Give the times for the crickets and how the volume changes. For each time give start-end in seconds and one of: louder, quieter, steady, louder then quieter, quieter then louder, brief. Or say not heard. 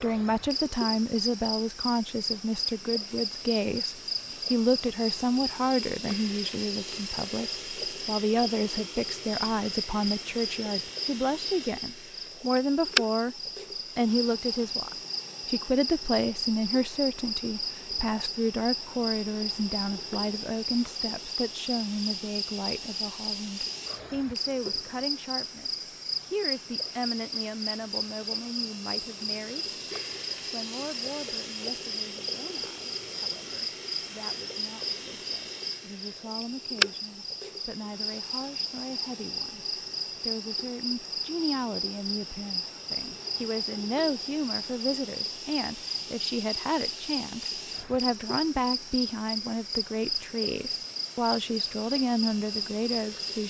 0.0-53.4 steady.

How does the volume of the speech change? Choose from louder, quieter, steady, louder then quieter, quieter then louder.
quieter then louder.